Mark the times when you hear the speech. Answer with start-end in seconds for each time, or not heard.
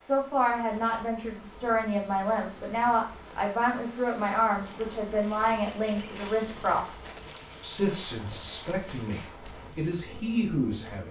0.1-7.0, 7.6-11.0.